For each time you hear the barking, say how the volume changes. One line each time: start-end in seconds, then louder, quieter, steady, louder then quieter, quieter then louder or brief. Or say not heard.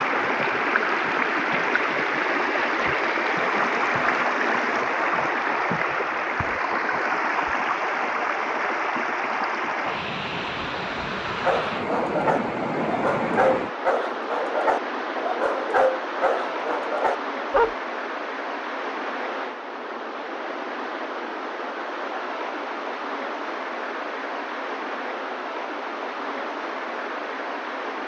11.4-17.7 steady.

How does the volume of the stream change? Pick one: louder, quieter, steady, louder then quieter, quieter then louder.
quieter.